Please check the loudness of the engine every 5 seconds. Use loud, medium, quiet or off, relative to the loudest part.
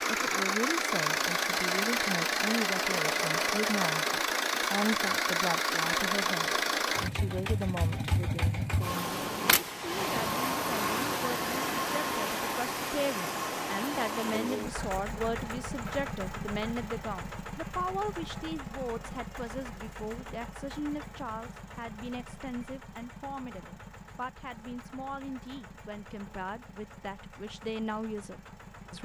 loud, loud, loud, medium, quiet, quiet.